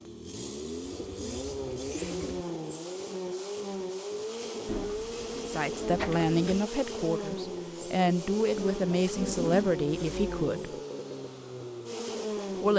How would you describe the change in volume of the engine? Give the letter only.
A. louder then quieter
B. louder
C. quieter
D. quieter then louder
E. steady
E.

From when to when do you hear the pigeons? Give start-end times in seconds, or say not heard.
0.8-2.5, 4.7-6.6, 8.6-10.5.